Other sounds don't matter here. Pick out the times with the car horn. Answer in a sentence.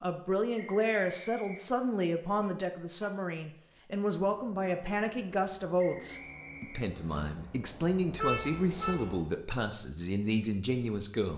The car horn can be heard from 2.4 to 3.9 s and from 8.2 to 9.0 s.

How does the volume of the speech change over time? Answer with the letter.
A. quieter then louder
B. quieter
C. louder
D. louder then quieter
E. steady
E.